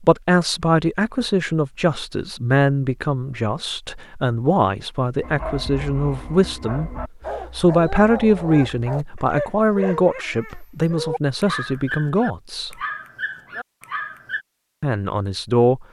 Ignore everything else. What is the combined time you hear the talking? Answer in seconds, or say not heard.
14 s.